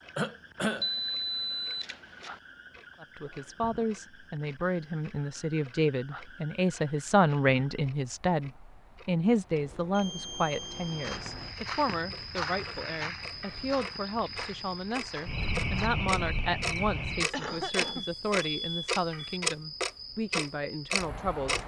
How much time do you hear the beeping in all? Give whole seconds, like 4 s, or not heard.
5 s.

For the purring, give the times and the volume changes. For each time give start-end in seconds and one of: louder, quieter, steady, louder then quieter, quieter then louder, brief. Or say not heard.
not heard.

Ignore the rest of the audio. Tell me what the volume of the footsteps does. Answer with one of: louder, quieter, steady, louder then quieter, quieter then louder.
quieter.